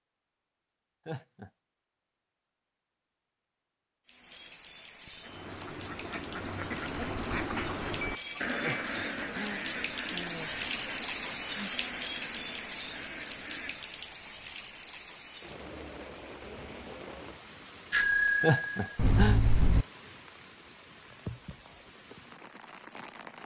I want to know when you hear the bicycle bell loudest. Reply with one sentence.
The volume of the bicycle bell peaks at 18 seconds.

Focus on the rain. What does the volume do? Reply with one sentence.
The volume of the rain goes up, then down.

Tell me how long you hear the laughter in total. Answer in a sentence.
You can hear the laughter for 3 seconds altogether.